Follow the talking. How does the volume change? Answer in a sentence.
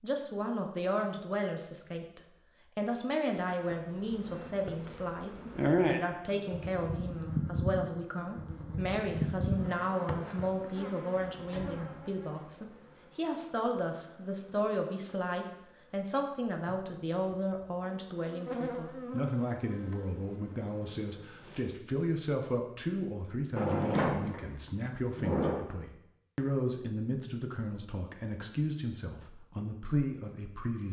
The volume of the talking stays about the same.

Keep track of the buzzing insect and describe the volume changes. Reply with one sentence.
The volume of the buzzing insect goes down, then up.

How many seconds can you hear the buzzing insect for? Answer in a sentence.
The buzzing insect can be heard for 18 seconds in total.